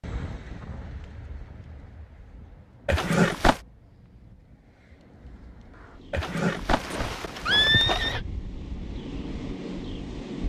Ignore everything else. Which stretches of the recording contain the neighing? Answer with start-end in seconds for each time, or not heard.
2.9-3.6, 6.1-8.2.